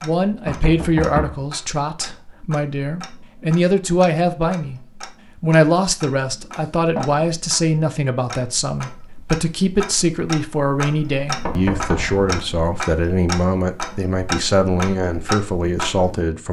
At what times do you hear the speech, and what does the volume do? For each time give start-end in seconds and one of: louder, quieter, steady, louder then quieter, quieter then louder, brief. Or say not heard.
0.0-4.8 quieter then louder
5.4-16.4 steady.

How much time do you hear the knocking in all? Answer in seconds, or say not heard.
3 s.